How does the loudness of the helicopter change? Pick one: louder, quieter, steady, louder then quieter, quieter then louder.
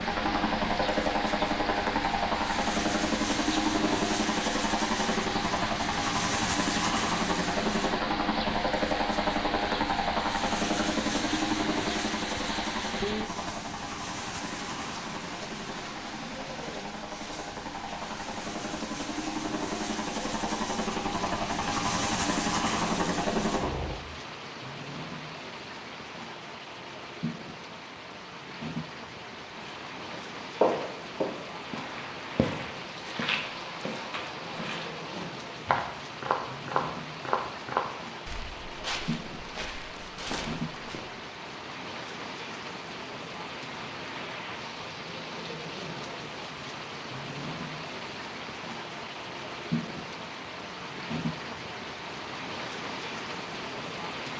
quieter then louder.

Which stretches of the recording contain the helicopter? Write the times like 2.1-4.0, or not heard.
0.0-24.0.